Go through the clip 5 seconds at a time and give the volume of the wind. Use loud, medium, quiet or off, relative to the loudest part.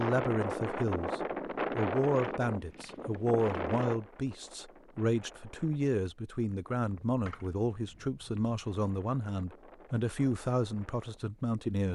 loud, quiet, quiet.